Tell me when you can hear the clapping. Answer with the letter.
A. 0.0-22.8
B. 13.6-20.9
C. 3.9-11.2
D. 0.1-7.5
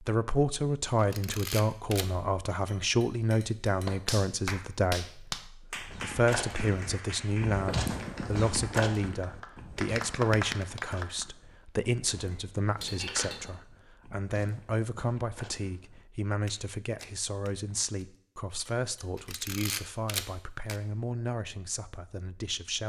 C.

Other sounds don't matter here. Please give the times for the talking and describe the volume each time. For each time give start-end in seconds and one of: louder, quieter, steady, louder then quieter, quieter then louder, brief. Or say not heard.
0.0-22.8 quieter.